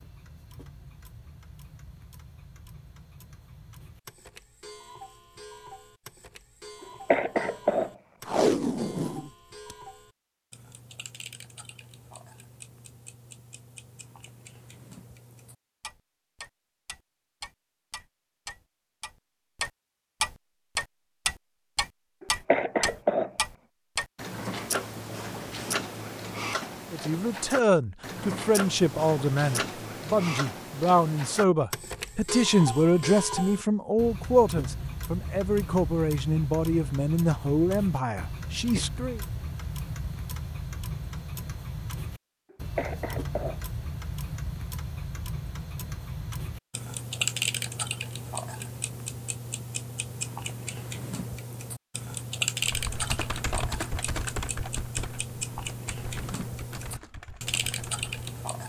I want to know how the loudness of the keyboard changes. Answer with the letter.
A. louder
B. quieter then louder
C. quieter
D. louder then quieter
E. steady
C.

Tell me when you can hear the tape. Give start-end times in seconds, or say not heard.
8.2-9.8.